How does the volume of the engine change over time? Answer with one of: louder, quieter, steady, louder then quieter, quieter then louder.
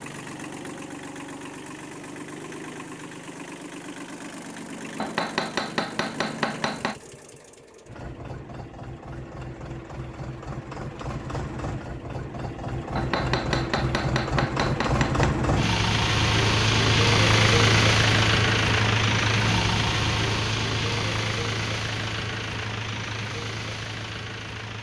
louder then quieter.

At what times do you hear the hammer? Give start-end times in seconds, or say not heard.
5.0-7.0, 12.9-15.3.